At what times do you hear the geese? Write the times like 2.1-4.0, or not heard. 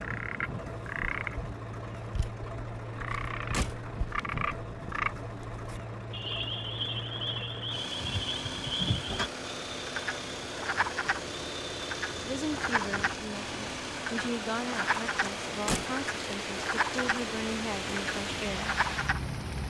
not heard.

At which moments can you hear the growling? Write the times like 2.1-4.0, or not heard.
not heard.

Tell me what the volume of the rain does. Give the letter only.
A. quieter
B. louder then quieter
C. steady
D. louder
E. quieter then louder
D.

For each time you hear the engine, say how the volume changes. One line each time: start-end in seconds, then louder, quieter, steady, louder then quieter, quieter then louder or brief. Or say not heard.
0.0-19.6 steady.